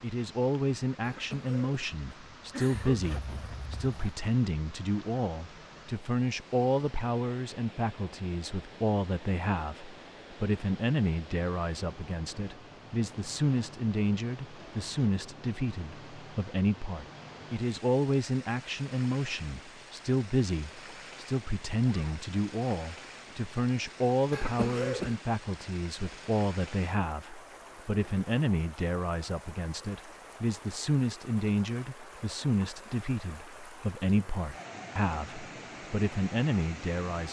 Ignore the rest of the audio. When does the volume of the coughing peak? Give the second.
25 s.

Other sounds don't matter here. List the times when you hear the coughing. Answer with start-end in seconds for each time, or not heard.
1.0-3.0, 24.3-25.1.